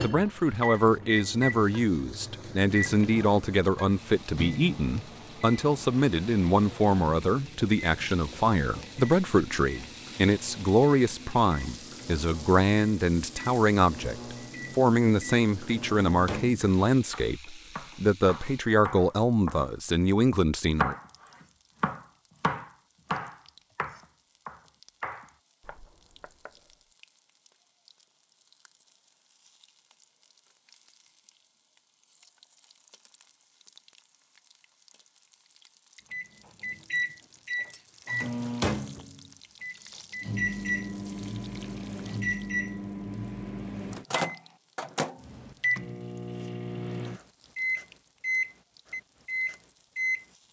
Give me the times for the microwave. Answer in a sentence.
The microwave can be heard from 0.0 to 16.8 s and from 36.1 to 50.2 s.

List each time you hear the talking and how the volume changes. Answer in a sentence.
The talking can be heard from 0.0 to 20.9 s, at a steady volume.